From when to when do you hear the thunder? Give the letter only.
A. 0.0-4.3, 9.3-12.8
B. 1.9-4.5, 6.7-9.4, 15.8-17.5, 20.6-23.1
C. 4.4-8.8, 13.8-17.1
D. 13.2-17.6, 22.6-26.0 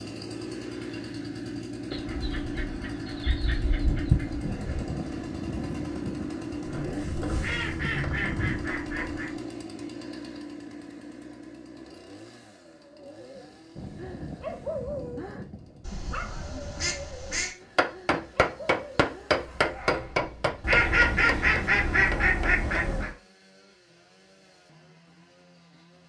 C.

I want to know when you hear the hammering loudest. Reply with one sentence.
The loudest moment of the hammering is at 19 seconds.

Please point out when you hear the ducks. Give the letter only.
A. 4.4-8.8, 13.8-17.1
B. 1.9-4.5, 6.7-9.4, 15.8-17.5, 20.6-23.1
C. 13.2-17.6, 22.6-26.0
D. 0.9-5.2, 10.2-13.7
B.